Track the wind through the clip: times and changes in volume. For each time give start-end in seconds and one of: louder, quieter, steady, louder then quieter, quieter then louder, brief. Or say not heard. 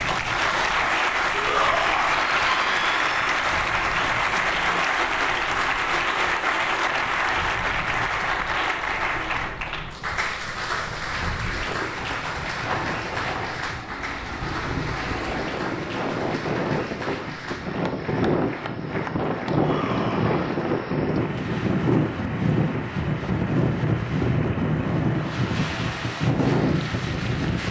0.0-27.6 louder.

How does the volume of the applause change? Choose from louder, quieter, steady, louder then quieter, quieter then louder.
quieter.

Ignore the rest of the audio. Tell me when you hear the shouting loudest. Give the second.
2 s.